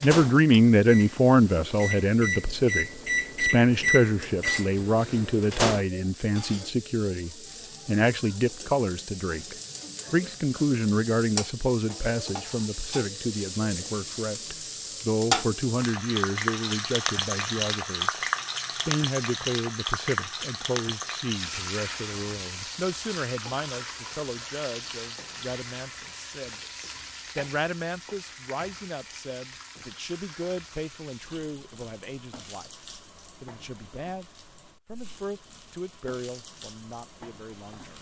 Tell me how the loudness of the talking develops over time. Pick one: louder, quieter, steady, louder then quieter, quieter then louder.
quieter.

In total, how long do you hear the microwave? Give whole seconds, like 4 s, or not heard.
6 s.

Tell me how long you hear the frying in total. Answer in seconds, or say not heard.
38 s.